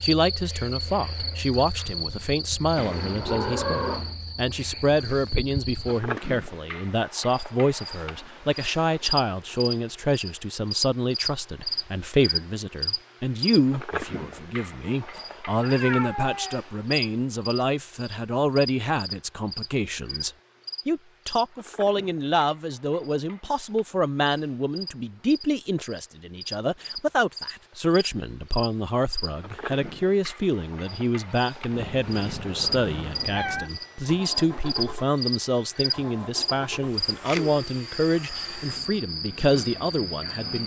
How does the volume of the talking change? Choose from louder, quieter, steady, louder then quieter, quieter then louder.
steady.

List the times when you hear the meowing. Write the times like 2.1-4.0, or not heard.
2.8-4.2, 15.6-16.6, 31.7-33.7.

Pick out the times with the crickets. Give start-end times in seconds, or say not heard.
0.0-40.6.